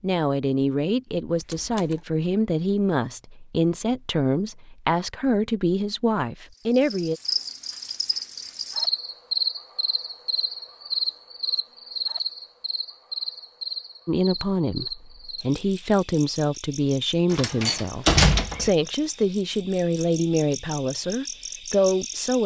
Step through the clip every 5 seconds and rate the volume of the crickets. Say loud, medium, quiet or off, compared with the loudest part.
off, loud, loud, quiet, medium.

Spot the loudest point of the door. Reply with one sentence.
The loudest moment of the door is at 18 seconds.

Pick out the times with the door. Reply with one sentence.
The door can be heard from 1.4 to 2.0 s and from 17.3 to 18.7 s.